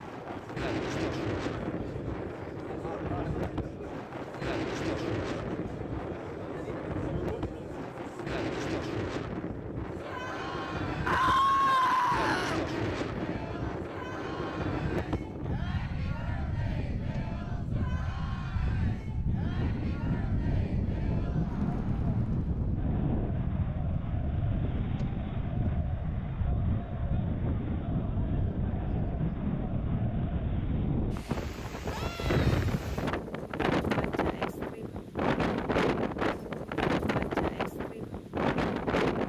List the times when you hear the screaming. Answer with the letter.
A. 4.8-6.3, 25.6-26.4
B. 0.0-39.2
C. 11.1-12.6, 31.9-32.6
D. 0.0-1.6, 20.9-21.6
C.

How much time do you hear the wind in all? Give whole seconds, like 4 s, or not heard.
39 s.